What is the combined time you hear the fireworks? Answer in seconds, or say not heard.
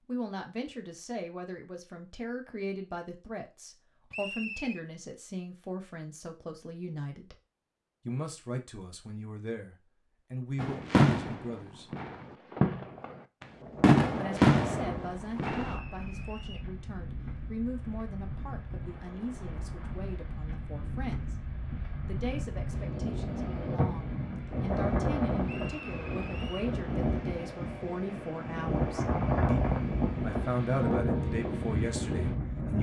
5 s.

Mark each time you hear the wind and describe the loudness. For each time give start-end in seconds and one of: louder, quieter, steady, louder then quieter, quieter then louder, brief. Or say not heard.
13.5-32.7 louder.